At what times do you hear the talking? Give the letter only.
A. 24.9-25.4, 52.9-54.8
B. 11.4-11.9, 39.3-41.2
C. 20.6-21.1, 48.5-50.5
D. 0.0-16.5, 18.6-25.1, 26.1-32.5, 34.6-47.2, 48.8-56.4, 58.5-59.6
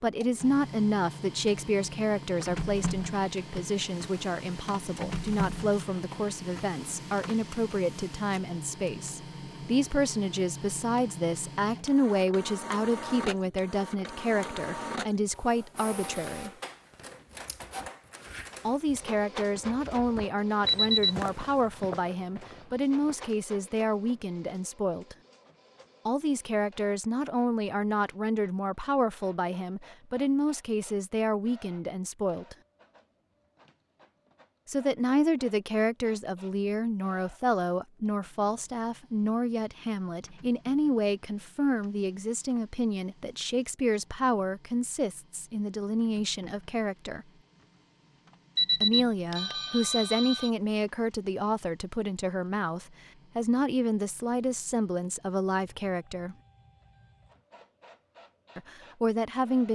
D.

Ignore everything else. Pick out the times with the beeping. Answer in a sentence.
The beeping can be heard from 20.6 to 21.1 s and from 48.5 to 50.5 s.